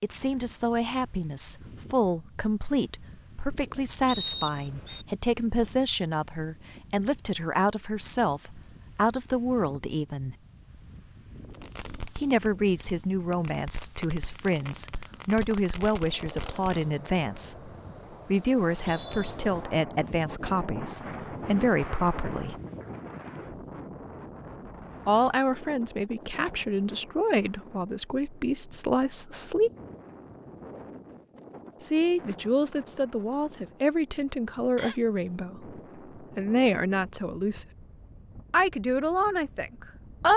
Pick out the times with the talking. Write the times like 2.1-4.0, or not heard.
0.0-10.3, 12.2-22.6, 25.1-29.7, 31.8-37.6, 38.5-40.3.